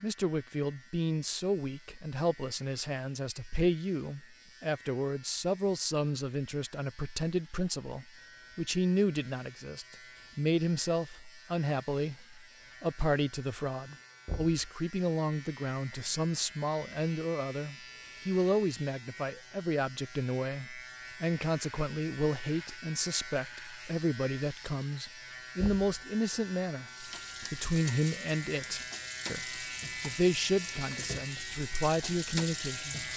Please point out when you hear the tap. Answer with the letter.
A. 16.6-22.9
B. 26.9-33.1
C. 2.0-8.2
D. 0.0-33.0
B.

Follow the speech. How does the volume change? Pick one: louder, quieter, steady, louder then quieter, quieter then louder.
steady.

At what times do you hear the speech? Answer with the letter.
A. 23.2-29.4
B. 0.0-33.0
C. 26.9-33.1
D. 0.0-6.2
B.